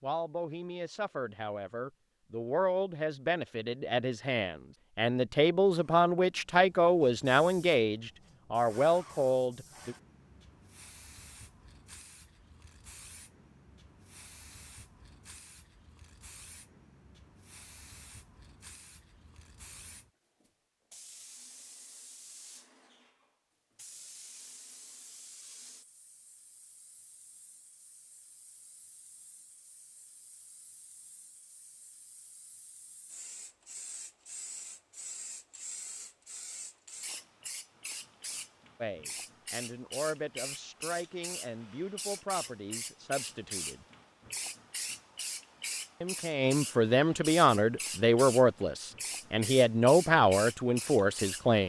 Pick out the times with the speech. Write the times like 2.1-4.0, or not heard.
0.0-9.9, 38.8-43.9, 46.0-51.6.